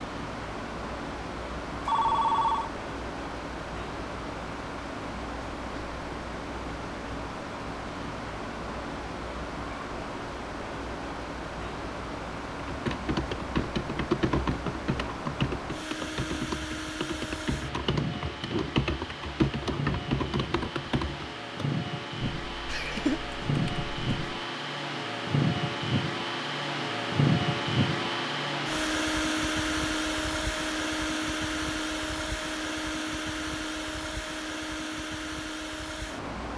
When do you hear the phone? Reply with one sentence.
The phone can be heard from 1.9 to 2.7 s.